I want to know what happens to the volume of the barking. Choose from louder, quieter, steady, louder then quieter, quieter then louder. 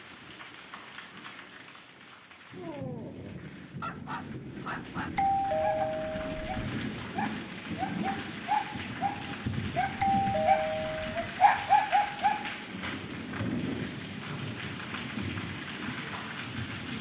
louder.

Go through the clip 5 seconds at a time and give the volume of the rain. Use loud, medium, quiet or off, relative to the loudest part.
medium, loud, loud, loud.